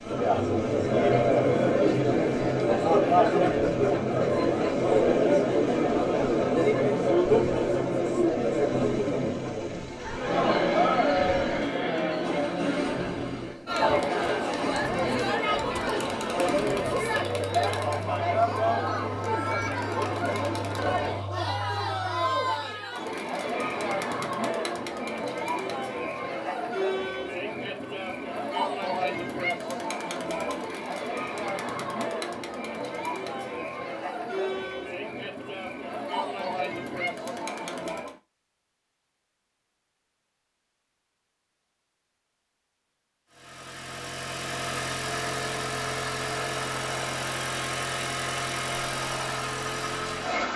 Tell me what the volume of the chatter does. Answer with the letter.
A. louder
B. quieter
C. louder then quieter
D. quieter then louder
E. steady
B.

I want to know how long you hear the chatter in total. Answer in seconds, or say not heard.
38 s.